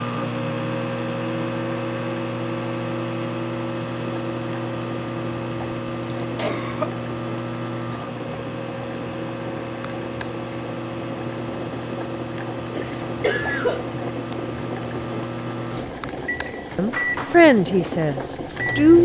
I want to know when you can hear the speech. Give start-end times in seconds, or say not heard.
16.8-19.0.